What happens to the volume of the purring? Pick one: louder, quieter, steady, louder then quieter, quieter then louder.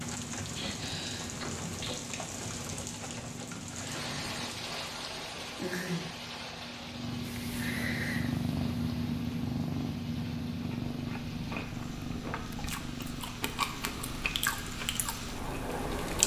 louder then quieter.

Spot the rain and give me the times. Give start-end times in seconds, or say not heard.
0.0-16.2.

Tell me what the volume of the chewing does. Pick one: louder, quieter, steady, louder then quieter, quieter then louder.
louder then quieter.